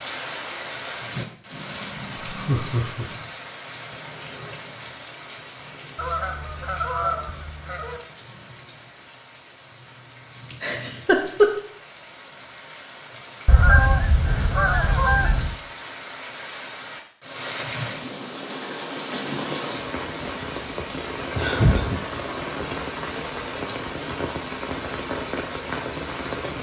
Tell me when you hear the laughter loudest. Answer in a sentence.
The volume of the laughter peaks at 11 seconds.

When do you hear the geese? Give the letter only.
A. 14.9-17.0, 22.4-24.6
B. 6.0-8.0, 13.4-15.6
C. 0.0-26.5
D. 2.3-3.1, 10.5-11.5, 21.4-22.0
B.